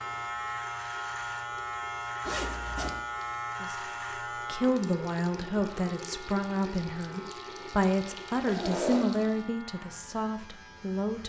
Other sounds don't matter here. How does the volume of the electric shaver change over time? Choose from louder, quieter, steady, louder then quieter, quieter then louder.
quieter.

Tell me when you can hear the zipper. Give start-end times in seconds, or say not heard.
2.2-3.0, 8.4-9.2.